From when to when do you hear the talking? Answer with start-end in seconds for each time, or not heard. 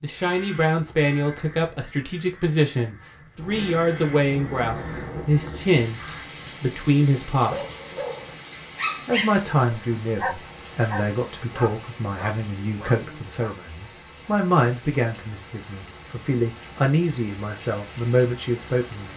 0.0-7.7, 9.1-19.1.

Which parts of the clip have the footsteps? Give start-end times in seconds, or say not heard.
not heard.